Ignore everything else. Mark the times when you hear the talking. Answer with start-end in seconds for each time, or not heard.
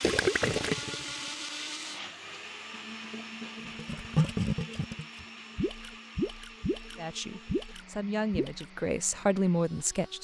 7.0-10.1.